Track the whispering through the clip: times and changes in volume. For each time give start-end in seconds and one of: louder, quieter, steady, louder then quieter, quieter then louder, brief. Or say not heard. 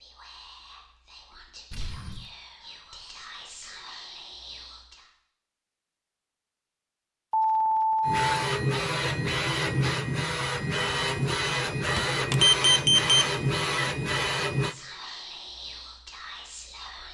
0.0-5.1 louder
14.6-17.0 brief.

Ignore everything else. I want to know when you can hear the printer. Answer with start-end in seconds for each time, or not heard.
8.1-14.8.